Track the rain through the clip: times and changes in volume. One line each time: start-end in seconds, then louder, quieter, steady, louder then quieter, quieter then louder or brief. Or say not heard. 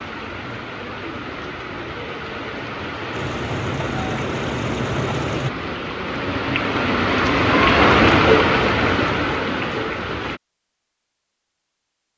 0.0-10.4 louder.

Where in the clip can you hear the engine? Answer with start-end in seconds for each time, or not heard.
3.1-5.5.